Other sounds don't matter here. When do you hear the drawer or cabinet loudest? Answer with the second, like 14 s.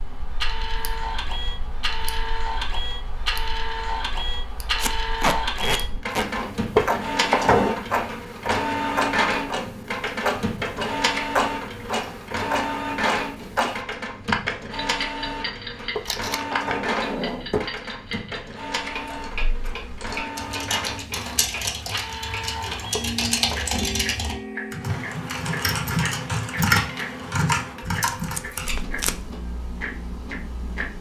7 s.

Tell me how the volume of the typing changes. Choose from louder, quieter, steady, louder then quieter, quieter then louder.
louder.